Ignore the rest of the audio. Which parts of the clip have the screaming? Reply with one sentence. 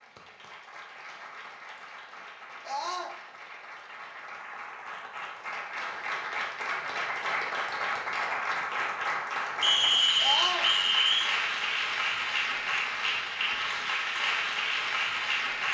The screaming can be heard from 2.6 to 3.1 s and from 10.2 to 10.7 s.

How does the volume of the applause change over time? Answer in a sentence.
The loudness of the applause goes up.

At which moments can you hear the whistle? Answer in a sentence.
The whistle can be heard from 9.6 to 11.3 s.